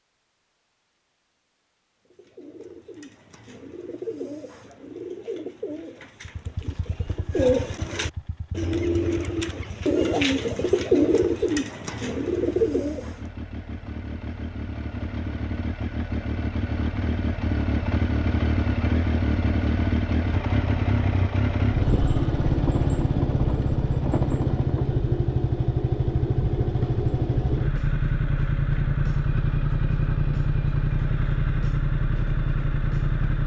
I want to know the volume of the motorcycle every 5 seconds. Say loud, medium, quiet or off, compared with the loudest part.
off, quiet, quiet, loud, loud, loud, loud.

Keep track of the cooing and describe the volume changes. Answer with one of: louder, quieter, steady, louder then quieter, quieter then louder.
louder.